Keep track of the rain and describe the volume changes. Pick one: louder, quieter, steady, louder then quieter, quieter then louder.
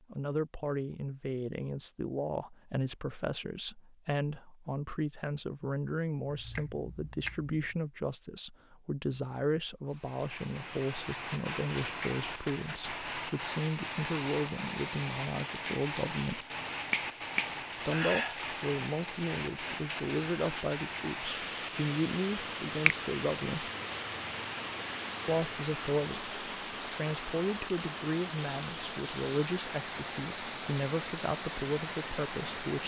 steady.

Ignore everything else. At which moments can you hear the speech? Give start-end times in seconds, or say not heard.
0.1-16.4, 17.9-23.7, 25.2-32.8.